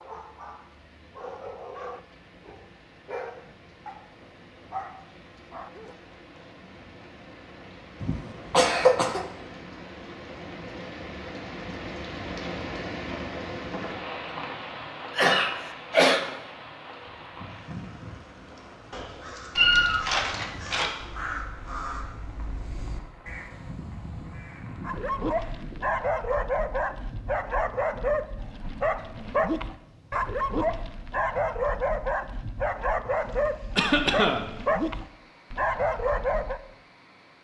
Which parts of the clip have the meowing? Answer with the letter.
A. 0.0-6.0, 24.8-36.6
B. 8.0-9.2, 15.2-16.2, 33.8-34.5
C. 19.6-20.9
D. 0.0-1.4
C.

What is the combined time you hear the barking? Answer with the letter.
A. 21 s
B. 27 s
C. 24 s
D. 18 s
D.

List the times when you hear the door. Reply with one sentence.
You can't hear the door here.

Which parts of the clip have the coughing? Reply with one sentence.
You can hear the coughing from 8.0 to 9.2 s, from 15.2 to 16.2 s and from 33.8 to 34.5 s.